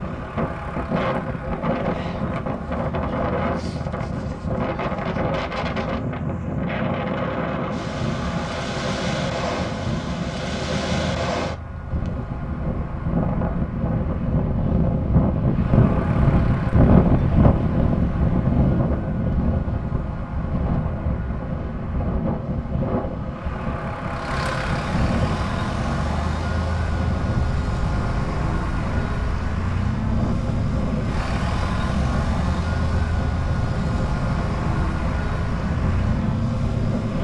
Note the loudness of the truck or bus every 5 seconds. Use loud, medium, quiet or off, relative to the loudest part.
medium, medium, medium, medium, medium, loud, loud, loud.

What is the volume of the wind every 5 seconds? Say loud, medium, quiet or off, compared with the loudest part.
medium, medium, medium, loud, medium, medium, medium, medium.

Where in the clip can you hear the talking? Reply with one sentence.
You can't hear the talking here.